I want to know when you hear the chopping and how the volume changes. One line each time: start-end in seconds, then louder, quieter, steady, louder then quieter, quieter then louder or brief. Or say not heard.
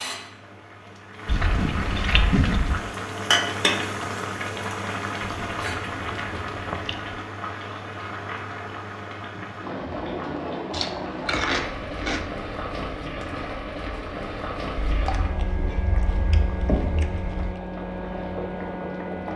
not heard.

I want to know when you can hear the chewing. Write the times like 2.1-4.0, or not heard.
1.2-2.8, 5.2-7.2, 10.7-12.3, 14.8-17.6.